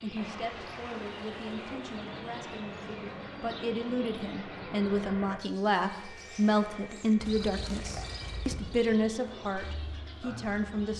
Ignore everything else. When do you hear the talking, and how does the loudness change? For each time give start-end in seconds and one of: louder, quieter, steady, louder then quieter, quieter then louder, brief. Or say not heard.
0.0-10.9 louder.